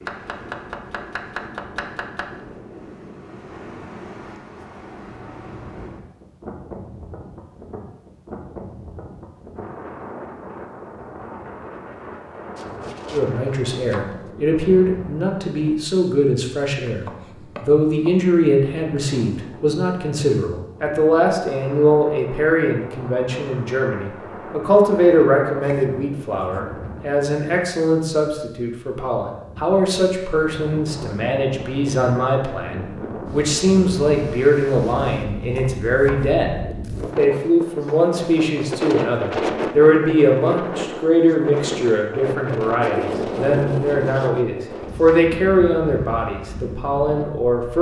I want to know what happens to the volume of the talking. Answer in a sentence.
The volume of the talking stays about the same.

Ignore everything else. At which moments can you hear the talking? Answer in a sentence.
You can hear the talking from 13.1 to 47.7 s.